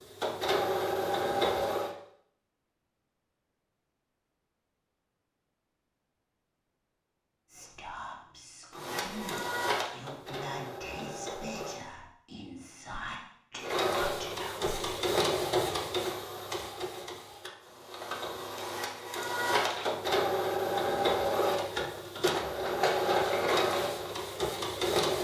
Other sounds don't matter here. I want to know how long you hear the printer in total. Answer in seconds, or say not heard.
17 s.